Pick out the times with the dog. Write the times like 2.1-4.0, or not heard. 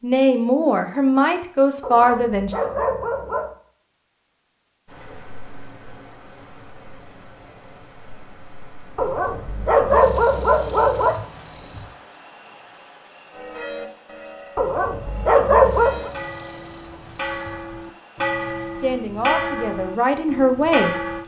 1.8-3.5, 8.9-11.2, 14.6-16.1.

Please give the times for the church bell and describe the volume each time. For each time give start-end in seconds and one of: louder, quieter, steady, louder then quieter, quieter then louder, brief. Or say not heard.
13.3-21.2 louder.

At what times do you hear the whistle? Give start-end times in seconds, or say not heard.
not heard.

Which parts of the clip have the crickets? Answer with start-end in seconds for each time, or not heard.
4.8-21.2.